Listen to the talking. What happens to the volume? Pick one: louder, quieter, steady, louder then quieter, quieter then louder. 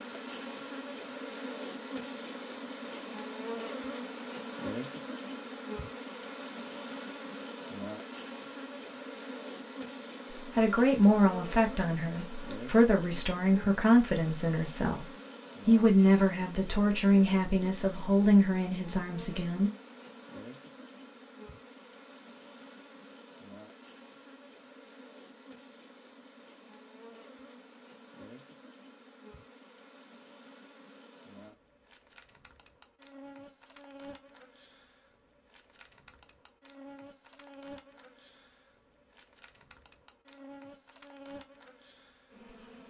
steady.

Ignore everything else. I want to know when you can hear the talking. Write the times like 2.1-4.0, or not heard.
10.6-15.1, 15.7-19.7.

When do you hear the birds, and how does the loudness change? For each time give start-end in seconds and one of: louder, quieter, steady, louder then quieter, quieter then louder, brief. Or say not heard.
not heard.